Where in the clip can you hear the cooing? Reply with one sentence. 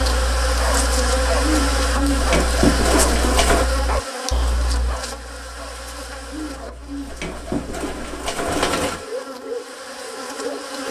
You can hear the cooing from 1.4 to 3.6 s and from 6.3 to 9.1 s.